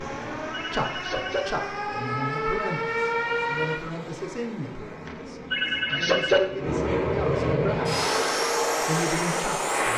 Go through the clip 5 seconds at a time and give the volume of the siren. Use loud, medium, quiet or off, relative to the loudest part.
loud, off.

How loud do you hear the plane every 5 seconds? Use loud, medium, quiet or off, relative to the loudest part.
quiet, loud.